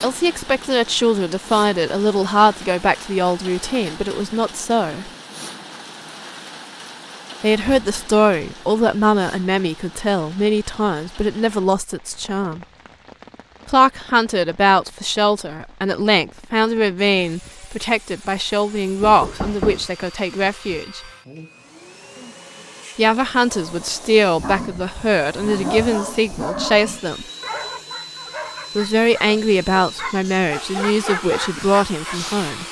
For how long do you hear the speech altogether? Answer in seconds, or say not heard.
26 s.